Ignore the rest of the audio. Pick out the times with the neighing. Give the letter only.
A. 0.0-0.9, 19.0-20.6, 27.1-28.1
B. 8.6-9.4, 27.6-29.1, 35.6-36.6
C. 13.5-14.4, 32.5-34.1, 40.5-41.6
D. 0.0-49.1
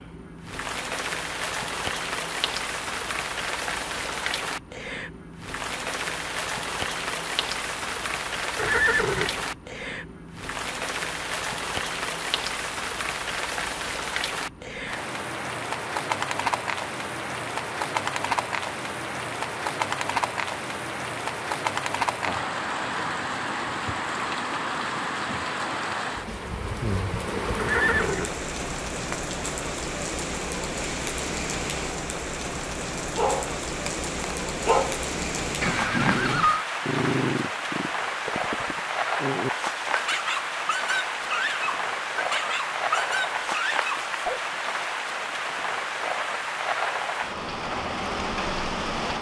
B.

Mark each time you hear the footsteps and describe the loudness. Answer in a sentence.
You can't hear the footsteps here.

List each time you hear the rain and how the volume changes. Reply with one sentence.
You can hear the rain from 0.0 to 49.1 s, at a steady volume.